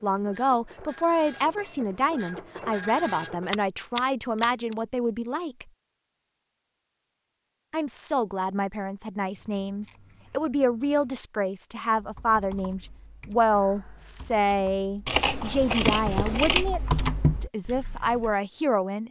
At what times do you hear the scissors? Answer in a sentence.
You can hear the scissors from 3.5 to 4.8 s, from 9.3 to 11.2 s and from 15.1 to 16.7 s.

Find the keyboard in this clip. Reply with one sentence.
The keyboard can be heard from 11.9 to 18.4 s.